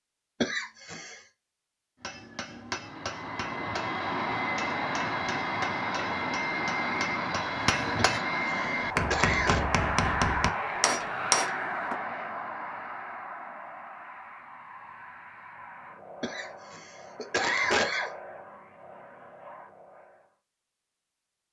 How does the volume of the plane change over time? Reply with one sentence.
The volume of the plane goes down.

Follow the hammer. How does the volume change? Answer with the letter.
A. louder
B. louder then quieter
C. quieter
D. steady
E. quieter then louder
A.